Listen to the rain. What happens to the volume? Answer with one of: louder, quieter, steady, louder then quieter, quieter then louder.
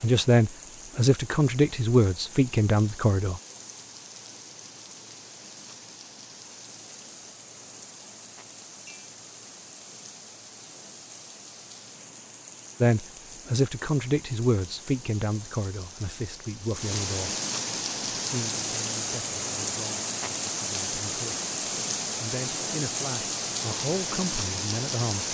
louder.